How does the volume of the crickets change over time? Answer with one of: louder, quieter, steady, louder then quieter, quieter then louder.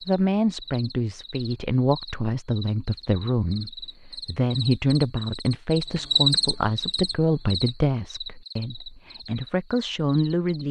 louder then quieter.